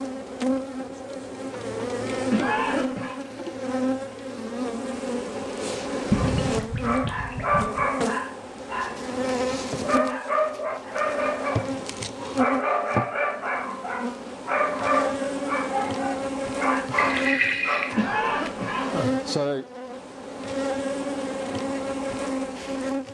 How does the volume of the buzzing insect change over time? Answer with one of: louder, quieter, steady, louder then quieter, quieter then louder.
steady.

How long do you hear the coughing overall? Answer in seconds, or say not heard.
2 s.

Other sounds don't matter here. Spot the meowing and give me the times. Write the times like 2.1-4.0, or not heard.
not heard.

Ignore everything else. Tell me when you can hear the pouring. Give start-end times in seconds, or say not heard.
6.1-7.8, 16.9-17.9.